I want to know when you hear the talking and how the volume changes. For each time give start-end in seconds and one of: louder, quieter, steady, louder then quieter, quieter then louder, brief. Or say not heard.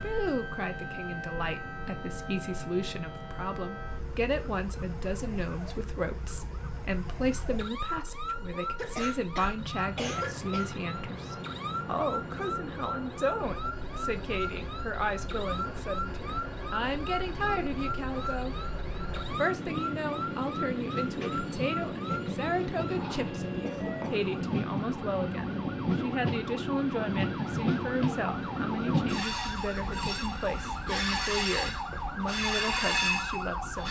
0.0-33.8 steady.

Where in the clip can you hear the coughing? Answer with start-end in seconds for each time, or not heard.
8.8-10.7, 23.6-24.2.